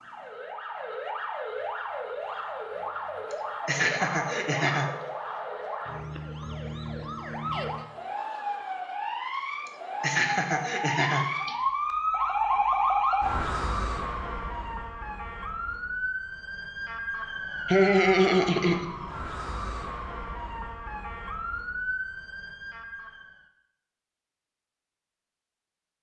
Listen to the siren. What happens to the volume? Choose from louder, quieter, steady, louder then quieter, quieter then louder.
louder then quieter.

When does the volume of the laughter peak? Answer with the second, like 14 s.
18 s.